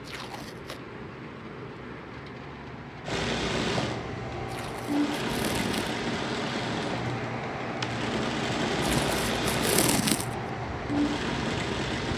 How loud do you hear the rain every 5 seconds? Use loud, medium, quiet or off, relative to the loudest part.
medium, loud, loud.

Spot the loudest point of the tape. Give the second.
10 s.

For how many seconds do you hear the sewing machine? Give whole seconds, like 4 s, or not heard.
9 s.